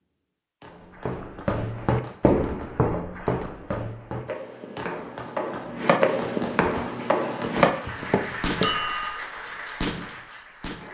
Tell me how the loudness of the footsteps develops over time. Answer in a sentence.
The loudness of the footsteps goes down, then up.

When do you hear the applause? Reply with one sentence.
You can hear the applause from 6.8 to 10.8 s.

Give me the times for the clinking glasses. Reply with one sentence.
You can hear the clinking glasses from 8.6 to 9.2 s.